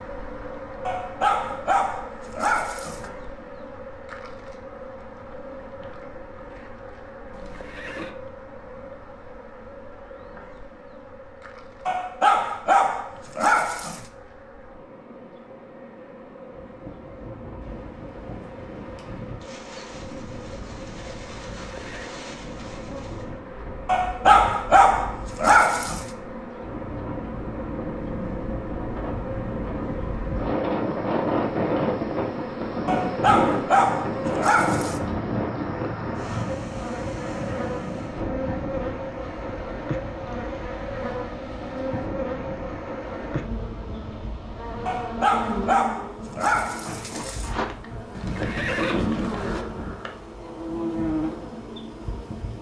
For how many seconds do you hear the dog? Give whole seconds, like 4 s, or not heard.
11 s.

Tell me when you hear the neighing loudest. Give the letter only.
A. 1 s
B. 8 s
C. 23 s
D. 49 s
D.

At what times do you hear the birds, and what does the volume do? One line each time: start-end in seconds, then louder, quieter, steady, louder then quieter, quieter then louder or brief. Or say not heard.
not heard.